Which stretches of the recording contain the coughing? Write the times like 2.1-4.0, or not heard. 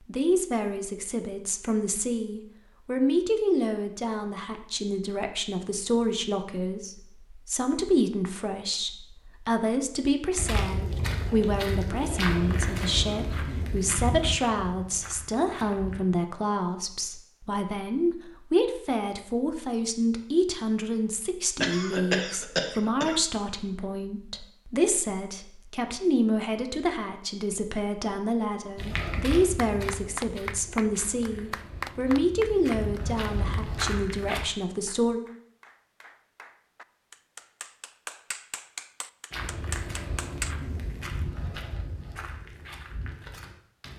21.6-23.2.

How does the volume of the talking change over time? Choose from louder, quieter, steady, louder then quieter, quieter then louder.
steady.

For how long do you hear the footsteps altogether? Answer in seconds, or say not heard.
16 s.